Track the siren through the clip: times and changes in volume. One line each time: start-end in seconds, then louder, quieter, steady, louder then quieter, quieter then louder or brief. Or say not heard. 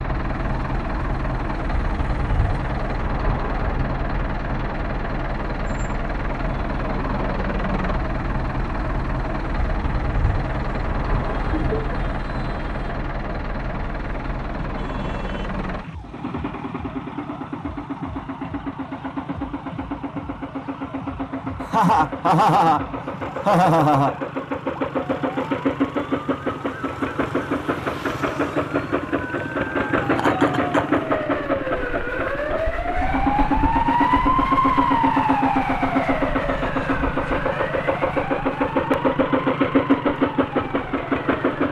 0.2-41.6 louder.